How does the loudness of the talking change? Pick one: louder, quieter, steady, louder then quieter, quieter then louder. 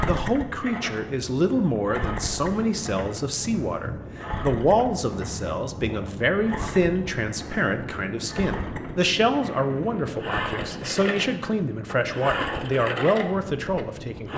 steady.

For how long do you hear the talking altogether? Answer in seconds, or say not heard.
14 s.